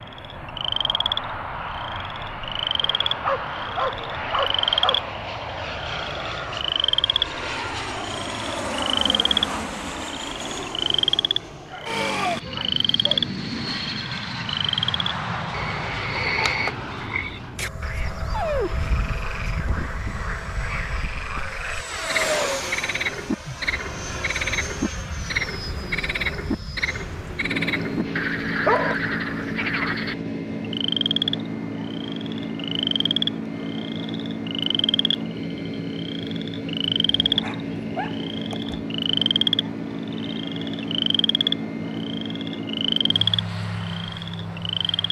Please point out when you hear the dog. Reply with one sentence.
You can hear the dog from 2.8 to 5.2 s, from 11.4 to 13.2 s, from 18.1 to 18.9 s, from 28.1 to 28.9 s and from 37.0 to 38.9 s.